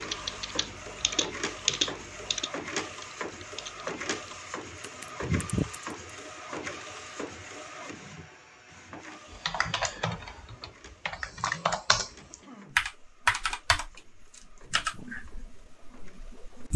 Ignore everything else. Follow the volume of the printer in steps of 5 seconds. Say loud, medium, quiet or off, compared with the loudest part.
loud, loud, quiet, quiet.